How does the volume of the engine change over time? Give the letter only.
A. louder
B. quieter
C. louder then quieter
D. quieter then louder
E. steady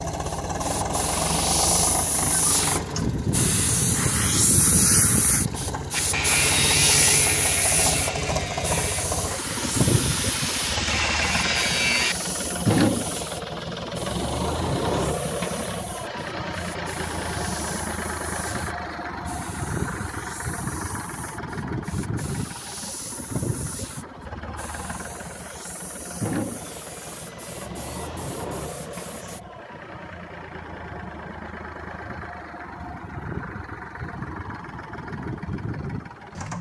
B.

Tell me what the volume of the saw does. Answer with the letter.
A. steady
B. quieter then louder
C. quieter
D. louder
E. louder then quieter
B.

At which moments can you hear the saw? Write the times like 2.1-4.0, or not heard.
5.9-12.2.